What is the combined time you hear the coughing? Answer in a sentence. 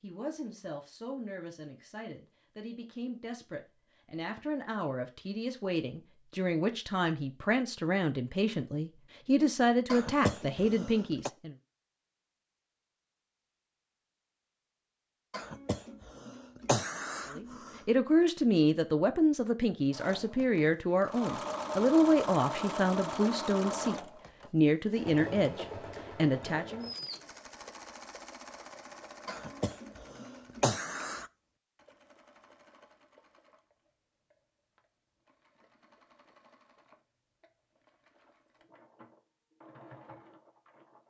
The coughing can be heard for 6 seconds in total.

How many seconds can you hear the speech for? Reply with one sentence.
You can hear the speech for 21 seconds altogether.